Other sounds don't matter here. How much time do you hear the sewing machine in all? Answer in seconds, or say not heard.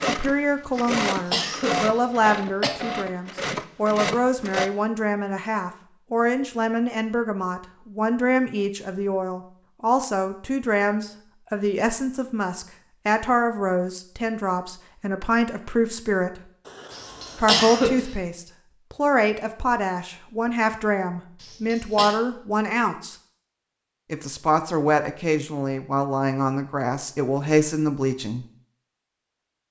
5 s.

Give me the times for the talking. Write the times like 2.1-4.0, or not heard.
0.0-16.4, 17.4-23.1, 24.1-28.4.